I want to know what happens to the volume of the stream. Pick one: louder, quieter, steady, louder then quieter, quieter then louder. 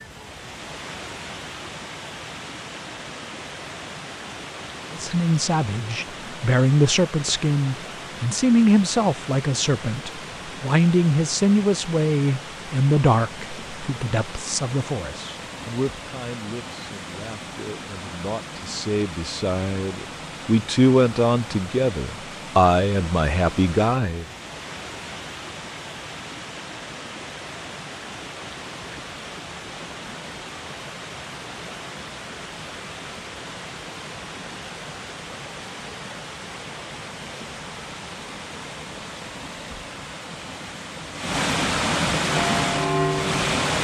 louder.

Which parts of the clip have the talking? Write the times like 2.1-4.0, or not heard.
4.9-24.2.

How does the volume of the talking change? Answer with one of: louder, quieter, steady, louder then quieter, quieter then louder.
quieter then louder.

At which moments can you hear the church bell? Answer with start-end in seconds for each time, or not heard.
42.2-43.8.